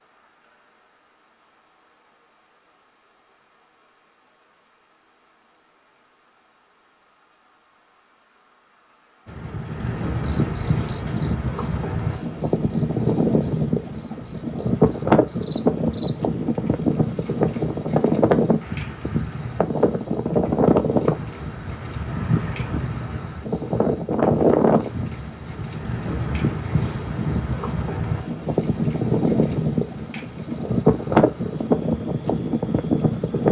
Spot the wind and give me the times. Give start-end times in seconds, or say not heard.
9.2-33.4.